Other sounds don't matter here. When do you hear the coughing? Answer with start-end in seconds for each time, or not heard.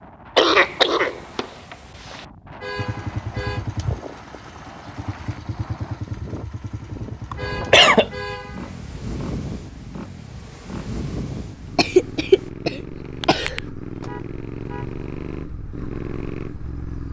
0.3-2.2, 7.3-8.1, 11.8-13.6.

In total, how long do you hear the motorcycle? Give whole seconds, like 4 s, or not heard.
14 s.